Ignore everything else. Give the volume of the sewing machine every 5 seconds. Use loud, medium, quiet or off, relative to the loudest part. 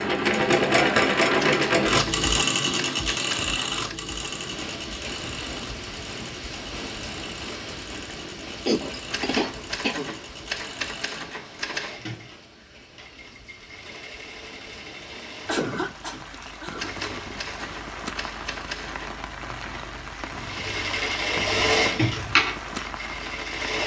loud, quiet, quiet, quiet, loud.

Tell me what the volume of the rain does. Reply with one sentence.
The volume of the rain goes down, then up.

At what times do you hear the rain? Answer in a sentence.
You can hear the rain from 4.2 to 23.8 s.